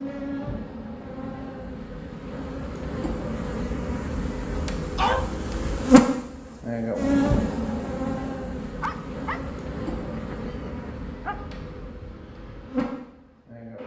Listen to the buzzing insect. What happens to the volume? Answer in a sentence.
The volume of the buzzing insect goes up, then down.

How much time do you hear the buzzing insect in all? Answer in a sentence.
You can hear the buzzing insect for 14 seconds altogether.